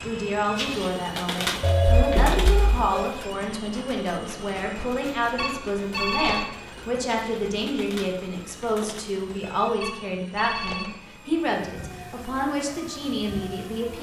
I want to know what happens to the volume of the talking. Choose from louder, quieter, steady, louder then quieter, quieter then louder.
steady.